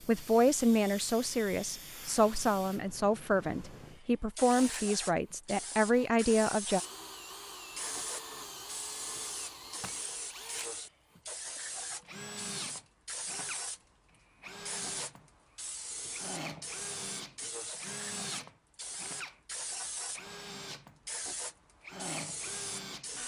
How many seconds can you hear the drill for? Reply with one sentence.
The drill can be heard for 19 seconds in total.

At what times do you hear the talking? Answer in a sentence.
The talking can be heard from 0.1 to 6.8 s.